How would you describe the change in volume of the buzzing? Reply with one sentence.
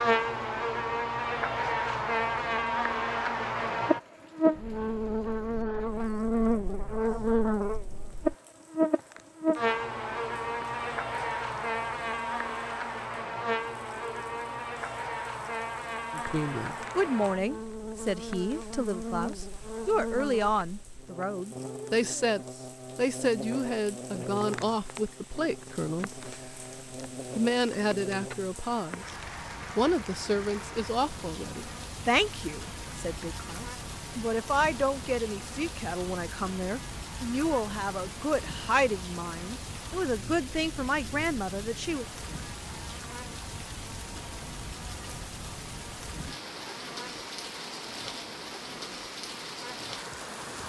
The volume of the buzzing goes down.